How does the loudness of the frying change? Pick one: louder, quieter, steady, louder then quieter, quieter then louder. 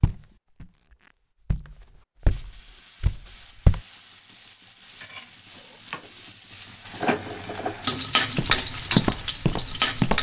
louder.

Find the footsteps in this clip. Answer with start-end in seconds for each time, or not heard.
0.0-3.8, 8.3-10.1.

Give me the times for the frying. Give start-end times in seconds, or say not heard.
2.2-10.1.